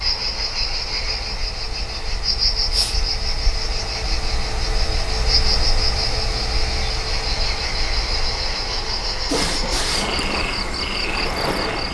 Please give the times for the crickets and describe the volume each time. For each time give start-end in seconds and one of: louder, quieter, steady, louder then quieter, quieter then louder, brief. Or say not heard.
0.0-11.9 steady.